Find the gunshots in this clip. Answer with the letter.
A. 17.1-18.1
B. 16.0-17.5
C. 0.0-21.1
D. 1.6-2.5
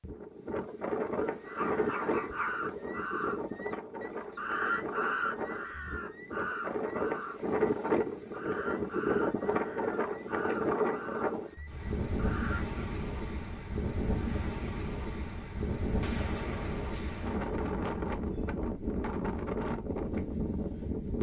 B.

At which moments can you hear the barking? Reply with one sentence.
You can hear the barking from 1.6 to 2.5 s.